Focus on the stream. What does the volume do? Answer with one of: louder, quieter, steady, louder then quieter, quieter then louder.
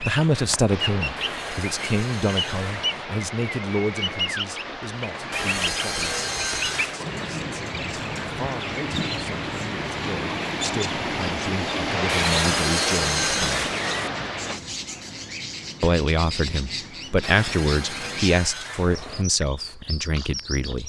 louder.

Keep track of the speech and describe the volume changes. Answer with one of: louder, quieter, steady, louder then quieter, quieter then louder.
quieter then louder.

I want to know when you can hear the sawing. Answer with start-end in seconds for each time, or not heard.
1.1-3.0, 5.3-7.0, 12.1-14.1, 17.2-19.2.